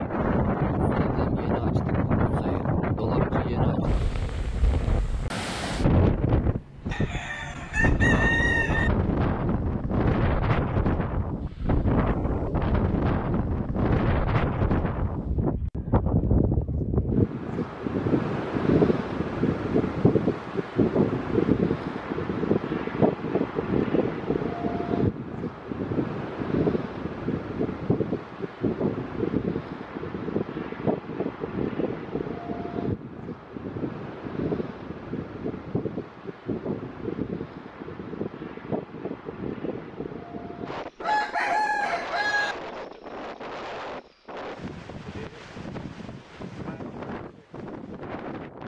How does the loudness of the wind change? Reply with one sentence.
The volume of the wind goes down.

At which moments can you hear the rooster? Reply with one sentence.
You can hear the rooster from 6.9 to 8.9 s and from 41.0 to 42.5 s.